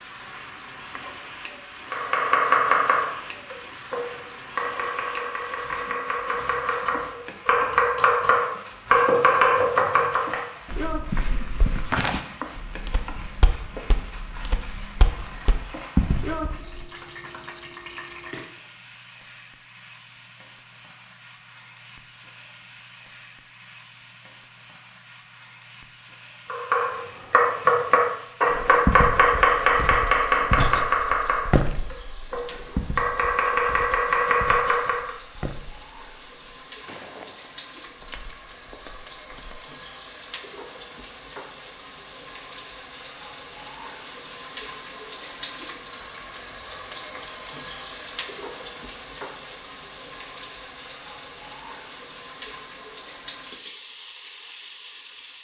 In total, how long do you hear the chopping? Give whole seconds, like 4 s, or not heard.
17 s.